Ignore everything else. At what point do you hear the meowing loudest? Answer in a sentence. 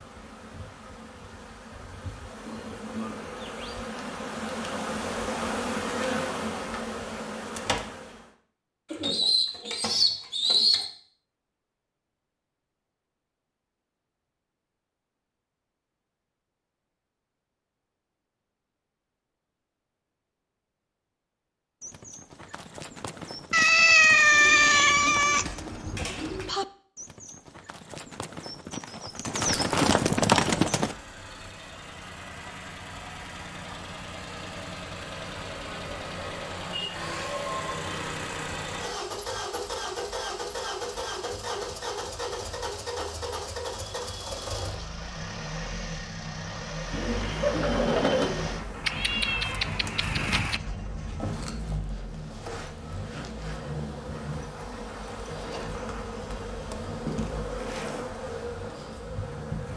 The loudest moment of the meowing is at 24 seconds.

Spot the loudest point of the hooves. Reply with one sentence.
The volume of the hooves peaks at 30 seconds.